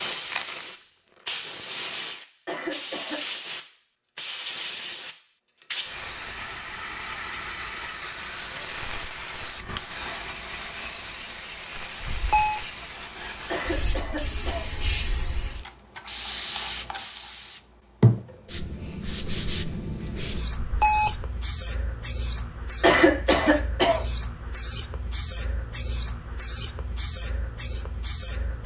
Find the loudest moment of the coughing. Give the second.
23 s.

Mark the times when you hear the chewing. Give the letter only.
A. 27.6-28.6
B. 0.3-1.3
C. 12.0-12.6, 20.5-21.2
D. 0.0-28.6
B.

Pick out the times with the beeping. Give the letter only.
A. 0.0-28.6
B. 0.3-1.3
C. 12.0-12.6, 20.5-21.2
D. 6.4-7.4
C.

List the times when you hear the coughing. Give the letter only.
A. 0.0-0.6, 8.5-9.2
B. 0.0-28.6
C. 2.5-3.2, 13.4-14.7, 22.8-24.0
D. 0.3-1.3
C.